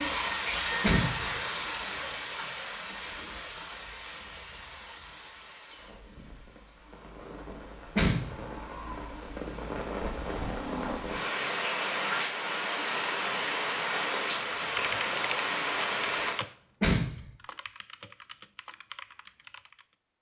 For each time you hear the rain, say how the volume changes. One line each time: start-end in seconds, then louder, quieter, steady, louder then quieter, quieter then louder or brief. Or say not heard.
0.0-16.4 quieter then louder.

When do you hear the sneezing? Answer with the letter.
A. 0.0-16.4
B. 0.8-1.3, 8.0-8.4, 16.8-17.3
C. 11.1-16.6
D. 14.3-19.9
B.